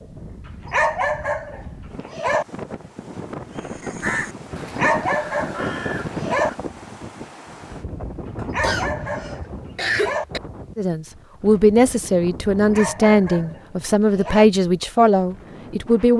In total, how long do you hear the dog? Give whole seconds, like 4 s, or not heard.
7 s.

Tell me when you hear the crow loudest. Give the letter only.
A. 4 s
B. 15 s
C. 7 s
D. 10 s
A.